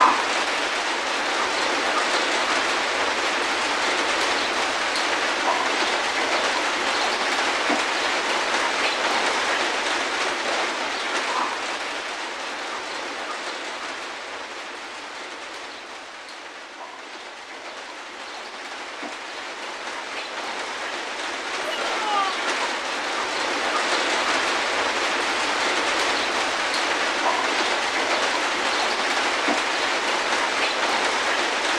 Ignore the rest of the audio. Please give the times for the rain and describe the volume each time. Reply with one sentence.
The rain can be heard from 0.0 to 31.7 s, getting quieter then louder.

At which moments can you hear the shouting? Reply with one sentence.
The shouting can be heard from 21.6 to 22.4 s.